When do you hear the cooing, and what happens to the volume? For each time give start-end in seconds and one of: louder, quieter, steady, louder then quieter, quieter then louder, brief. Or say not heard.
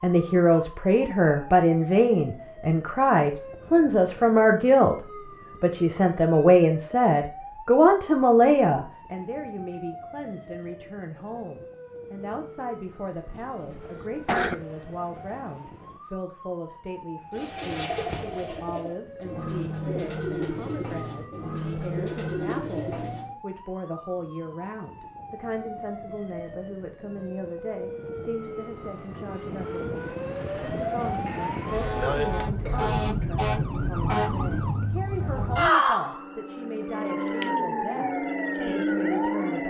17.3-23.4 steady.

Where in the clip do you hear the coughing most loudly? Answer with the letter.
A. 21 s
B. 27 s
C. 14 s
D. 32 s
C.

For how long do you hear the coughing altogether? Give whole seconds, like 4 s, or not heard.
3 s.